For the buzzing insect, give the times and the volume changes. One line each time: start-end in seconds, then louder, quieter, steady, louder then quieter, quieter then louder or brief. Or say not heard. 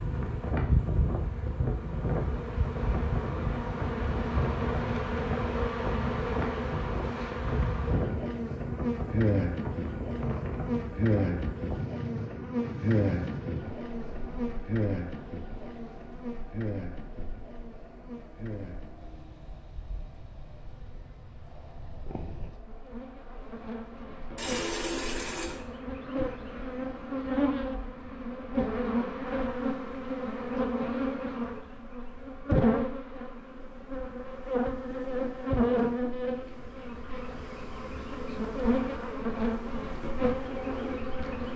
0.0-41.5 quieter then louder.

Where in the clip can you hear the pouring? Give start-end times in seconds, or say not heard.
24.4-25.6.